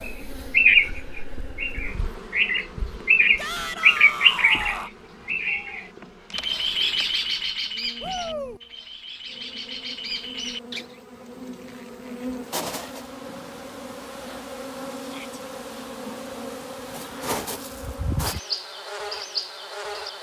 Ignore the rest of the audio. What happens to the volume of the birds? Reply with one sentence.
The volume of the birds goes down.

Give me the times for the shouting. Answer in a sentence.
The shouting can be heard from 3.4 to 4.9 s, from 8.0 to 8.6 s and from 15.0 to 15.4 s.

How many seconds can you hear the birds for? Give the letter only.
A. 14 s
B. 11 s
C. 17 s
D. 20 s
B.